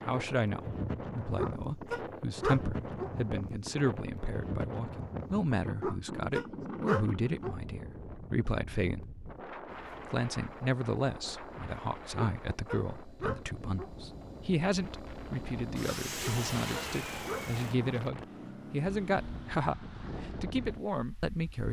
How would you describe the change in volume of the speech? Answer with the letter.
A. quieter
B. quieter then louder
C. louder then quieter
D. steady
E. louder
D.